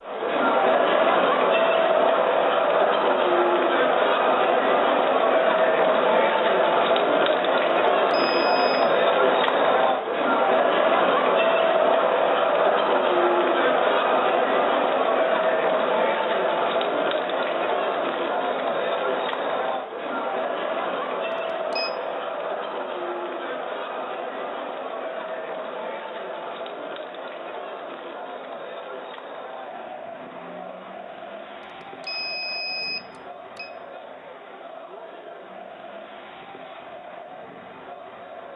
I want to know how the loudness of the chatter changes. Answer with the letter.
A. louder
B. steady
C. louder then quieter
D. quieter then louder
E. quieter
E.